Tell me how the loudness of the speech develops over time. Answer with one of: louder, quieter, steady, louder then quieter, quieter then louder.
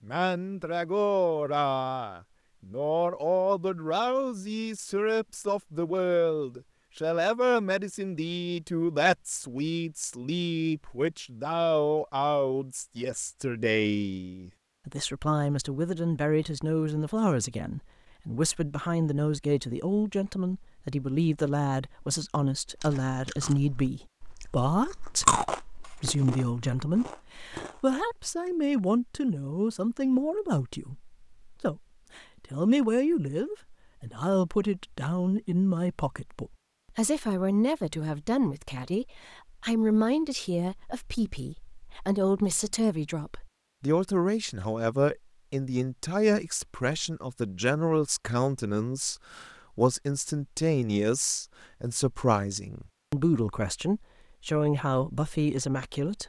steady.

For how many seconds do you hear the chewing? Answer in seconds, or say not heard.
5 s.